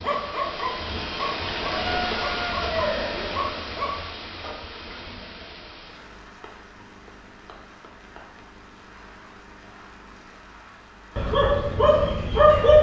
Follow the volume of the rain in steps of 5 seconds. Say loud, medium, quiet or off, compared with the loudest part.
loud, quiet, quiet.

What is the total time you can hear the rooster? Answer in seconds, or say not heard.
2 s.